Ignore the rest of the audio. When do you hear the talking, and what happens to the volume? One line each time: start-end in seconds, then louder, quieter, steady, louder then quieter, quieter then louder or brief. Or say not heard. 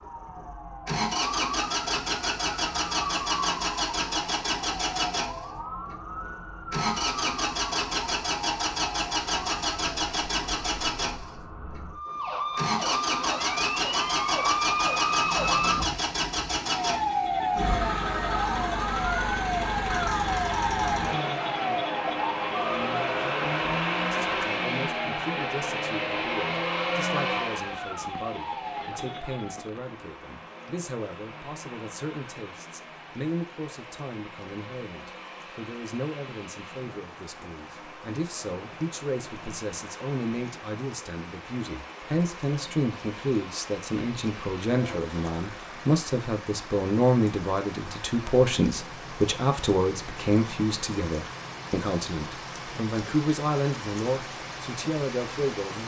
24.1-55.8 louder.